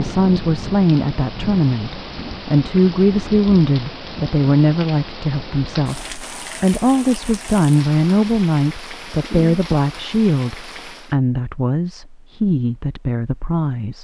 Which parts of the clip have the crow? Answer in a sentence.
You can't hear the crow here.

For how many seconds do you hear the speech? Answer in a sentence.
You can hear the speech for 14 seconds altogether.